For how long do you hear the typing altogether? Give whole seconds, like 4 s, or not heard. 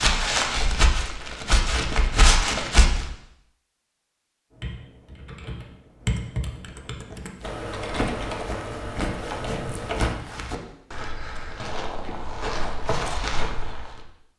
6 s.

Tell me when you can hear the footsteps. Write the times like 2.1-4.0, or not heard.
0.0-3.0, 7.2-13.9.